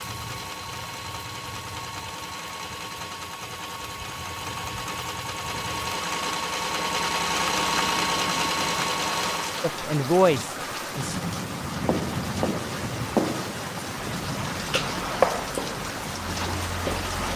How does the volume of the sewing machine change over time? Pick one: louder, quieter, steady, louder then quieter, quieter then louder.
louder.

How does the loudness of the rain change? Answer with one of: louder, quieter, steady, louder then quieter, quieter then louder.
louder.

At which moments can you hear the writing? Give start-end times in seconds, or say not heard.
11.7-17.3.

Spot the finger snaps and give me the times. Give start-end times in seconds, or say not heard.
not heard.